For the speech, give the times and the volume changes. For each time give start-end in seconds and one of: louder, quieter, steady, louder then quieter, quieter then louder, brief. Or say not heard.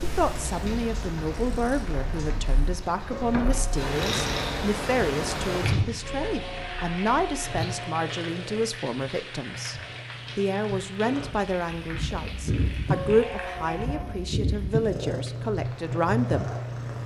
0.0-16.6 steady.